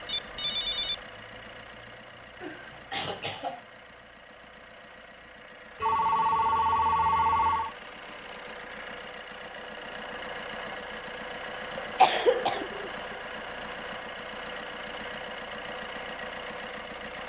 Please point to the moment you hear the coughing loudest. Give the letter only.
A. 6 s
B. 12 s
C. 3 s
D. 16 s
B.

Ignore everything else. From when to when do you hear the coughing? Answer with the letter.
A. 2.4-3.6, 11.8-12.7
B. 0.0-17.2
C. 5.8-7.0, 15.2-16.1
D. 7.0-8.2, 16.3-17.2
A.